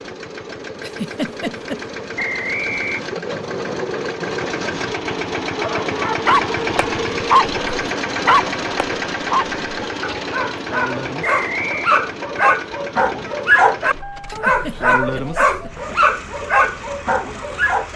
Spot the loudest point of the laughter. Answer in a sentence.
The loudest moment of the laughter is at 1 second.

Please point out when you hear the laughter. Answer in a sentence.
The laughter can be heard from 0.8 to 1.8 s and from 14.2 to 15.9 s.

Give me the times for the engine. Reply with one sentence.
The engine can be heard from 0.0 to 17.9 s.